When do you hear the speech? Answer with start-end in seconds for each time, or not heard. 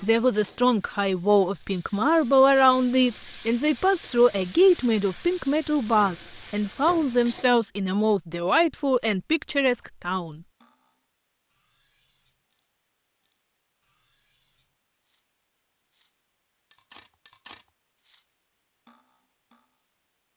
0.0-10.4.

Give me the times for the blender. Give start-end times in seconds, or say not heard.
not heard.